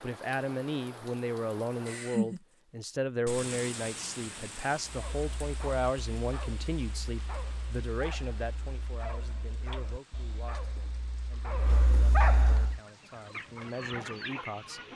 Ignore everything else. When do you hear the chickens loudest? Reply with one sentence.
The loudest moment of the chickens is at 14 seconds.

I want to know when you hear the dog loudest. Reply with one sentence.
The loudest moment of the dog is at 12 seconds.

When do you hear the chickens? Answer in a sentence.
The chickens can be heard from 12.8 to 14.9 s.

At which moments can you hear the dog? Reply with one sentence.
You can hear the dog from 4.8 to 12.8 s.